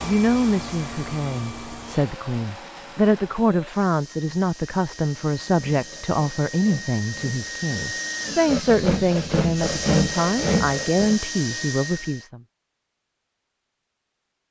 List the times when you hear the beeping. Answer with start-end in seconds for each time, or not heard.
not heard.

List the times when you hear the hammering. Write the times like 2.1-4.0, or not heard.
not heard.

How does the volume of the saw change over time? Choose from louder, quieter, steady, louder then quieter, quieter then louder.
louder.